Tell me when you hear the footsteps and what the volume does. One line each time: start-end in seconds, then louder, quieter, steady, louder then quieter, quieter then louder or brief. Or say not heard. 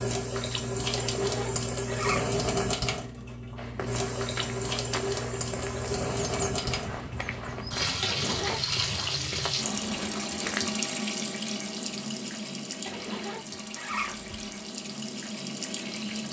3.5-10.6 steady.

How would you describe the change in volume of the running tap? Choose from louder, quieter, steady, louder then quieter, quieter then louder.
quieter.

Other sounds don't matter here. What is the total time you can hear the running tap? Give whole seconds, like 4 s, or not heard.
16 s.